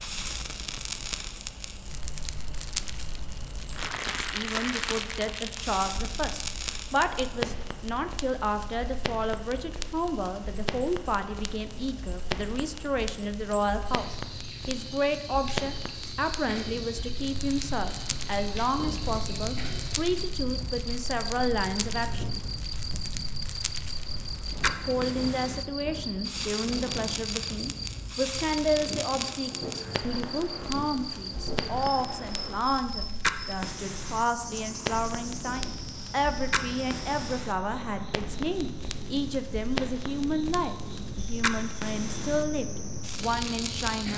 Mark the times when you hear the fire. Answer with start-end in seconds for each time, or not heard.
0.0-44.1.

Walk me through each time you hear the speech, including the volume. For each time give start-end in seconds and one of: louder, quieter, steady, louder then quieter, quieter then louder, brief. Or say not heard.
4.2-22.2 steady
24.9-44.1 steady.